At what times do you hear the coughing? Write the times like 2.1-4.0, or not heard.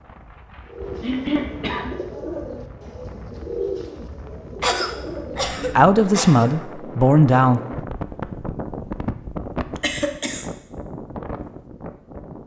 1.0-1.9, 4.6-6.5, 9.8-10.5.